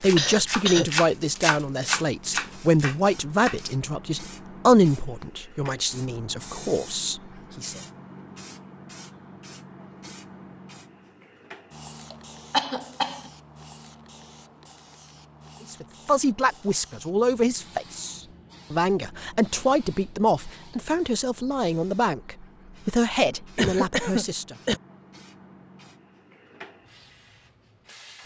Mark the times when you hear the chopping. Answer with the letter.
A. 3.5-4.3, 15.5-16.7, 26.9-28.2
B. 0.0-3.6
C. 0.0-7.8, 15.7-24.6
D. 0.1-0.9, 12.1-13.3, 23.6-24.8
B.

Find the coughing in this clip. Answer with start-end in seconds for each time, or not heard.
0.1-0.9, 12.1-13.3, 23.6-24.8.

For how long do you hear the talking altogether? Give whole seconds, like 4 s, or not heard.
17 s.